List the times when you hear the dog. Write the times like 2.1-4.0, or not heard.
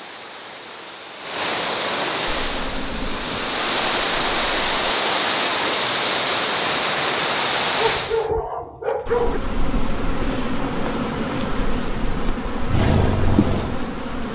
7.8-9.4.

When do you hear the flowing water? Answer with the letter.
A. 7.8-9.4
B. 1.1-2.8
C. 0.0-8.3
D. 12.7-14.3
C.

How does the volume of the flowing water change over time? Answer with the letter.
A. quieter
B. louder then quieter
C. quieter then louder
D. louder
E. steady
D.